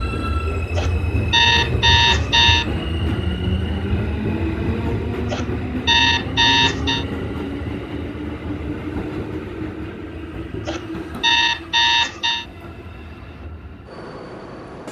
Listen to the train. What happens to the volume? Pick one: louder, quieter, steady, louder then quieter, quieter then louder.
quieter.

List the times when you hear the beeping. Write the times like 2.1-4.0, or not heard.
0.8-2.6, 5.3-7.0, 10.7-12.4.